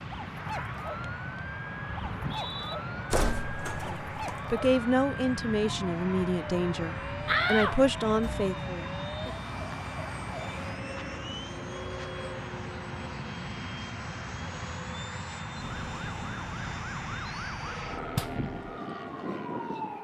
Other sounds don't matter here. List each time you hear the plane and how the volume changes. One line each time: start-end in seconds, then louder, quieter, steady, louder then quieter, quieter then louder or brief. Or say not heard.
0.0-20.0 steady.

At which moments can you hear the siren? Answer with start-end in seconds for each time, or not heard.
0.0-10.8, 15.6-20.0.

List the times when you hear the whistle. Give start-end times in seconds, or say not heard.
2.0-2.8.